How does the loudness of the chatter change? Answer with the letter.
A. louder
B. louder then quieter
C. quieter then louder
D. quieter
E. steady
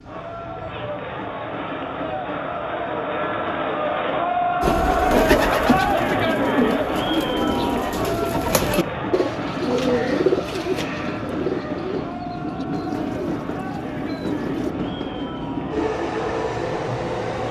B.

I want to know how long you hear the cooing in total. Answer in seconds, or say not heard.
10 s.